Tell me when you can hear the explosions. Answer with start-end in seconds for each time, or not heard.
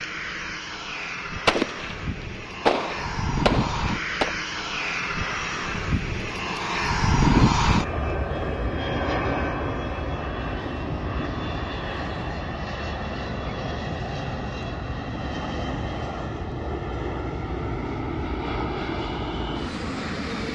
1.4-4.3.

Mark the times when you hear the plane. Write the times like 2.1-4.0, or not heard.
0.0-20.4.